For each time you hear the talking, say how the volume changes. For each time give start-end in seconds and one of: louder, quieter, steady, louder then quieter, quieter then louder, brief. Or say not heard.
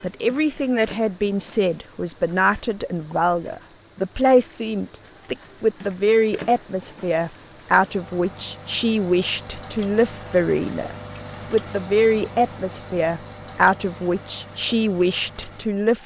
0.0-16.0 steady.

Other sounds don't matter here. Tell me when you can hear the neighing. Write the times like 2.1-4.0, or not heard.
not heard.